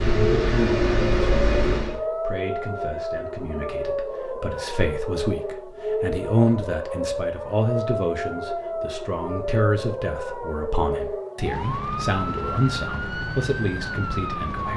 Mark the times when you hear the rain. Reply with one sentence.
You can't hear the rain here.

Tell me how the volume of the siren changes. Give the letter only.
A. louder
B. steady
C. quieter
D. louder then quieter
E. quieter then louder
B.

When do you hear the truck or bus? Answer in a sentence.
The truck or bus can be heard from 0.0 to 2.0 s.